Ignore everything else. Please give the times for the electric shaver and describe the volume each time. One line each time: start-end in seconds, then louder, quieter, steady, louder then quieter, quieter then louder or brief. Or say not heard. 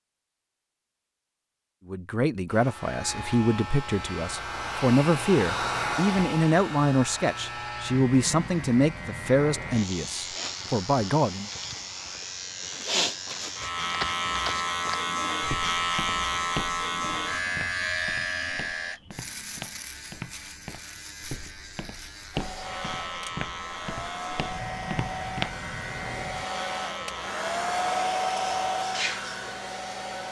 2.5-30.2 louder then quieter.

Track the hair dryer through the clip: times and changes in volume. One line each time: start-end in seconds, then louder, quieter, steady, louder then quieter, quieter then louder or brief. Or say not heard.
2.5-12.2 louder then quieter
22.3-30.2 louder.